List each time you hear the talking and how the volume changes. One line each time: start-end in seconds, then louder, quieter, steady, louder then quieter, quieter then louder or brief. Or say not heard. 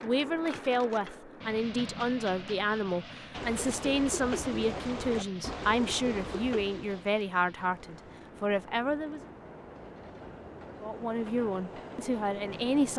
0.0-9.2 steady
10.8-12.9 brief.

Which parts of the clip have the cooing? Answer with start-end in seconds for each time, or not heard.
3.3-8.3.